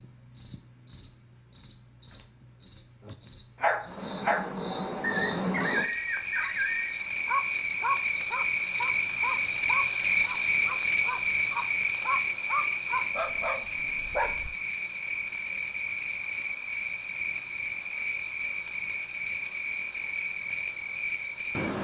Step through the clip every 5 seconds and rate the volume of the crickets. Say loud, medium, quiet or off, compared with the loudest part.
medium, loud, loud, medium, medium.